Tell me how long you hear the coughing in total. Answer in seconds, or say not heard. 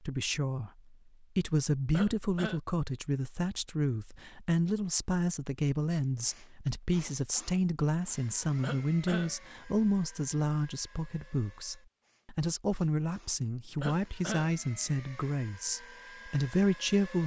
2 s.